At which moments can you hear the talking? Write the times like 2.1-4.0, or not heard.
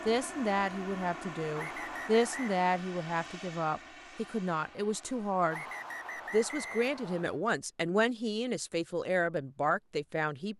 0.1-5.6, 6.3-10.5.